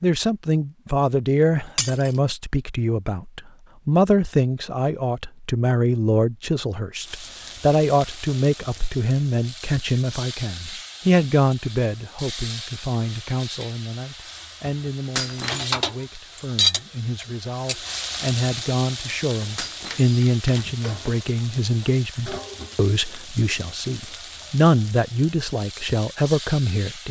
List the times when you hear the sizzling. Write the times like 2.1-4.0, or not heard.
7.0-27.0.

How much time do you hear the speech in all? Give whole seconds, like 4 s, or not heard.
27 s.